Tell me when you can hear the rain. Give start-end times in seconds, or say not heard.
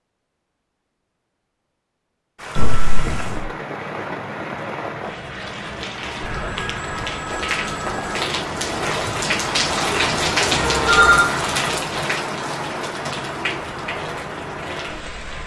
2.4-15.4.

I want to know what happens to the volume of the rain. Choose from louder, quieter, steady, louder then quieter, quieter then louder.
louder then quieter.